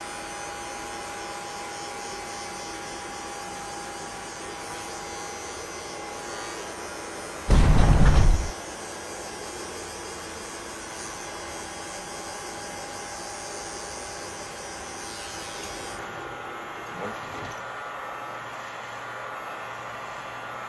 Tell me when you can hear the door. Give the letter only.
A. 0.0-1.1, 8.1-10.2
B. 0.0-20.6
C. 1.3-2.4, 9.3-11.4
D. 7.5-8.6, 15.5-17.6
D.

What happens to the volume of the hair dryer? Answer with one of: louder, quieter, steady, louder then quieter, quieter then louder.
steady.